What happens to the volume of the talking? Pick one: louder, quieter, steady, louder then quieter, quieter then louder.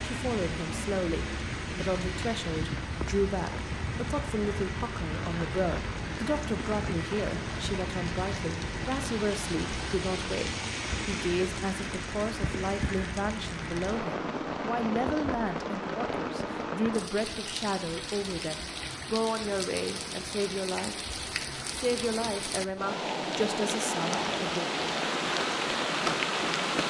steady.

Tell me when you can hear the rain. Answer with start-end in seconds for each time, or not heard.
0.0-26.8.